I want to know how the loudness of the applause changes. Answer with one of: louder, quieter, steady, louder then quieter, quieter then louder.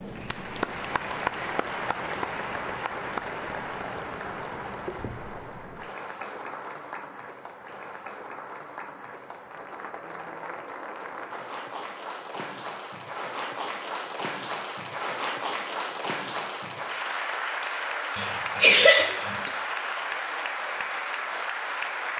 quieter then louder.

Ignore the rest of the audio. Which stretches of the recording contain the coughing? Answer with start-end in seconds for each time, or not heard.
18.1-19.5.